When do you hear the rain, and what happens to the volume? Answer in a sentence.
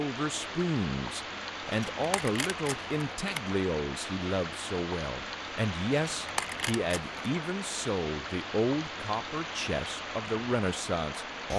The rain can be heard from 0.0 to 11.5 s, at a steady volume.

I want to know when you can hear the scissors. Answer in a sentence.
The scissors can be heard from 1.6 to 3.5 s and from 5.9 to 7.2 s.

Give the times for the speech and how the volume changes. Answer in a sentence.
You can hear the speech from 0.0 to 11.5 s, at a steady volume.